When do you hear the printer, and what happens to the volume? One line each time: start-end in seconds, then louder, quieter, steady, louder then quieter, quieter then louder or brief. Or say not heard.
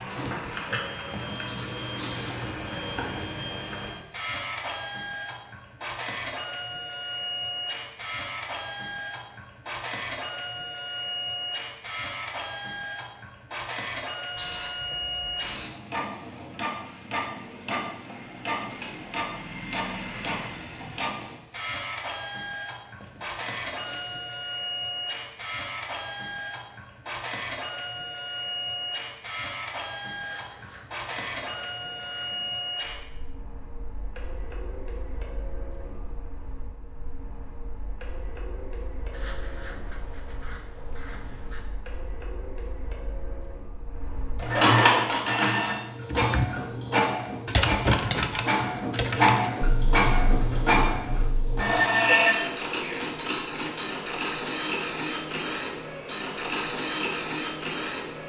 0.0-58.2 louder.